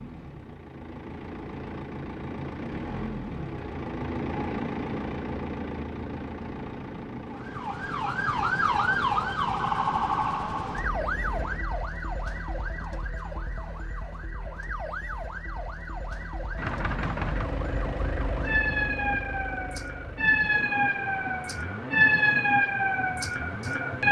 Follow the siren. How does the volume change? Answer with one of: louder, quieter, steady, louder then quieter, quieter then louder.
quieter then louder.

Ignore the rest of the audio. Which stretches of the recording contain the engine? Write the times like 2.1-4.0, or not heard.
0.0-11.7, 16.6-24.0.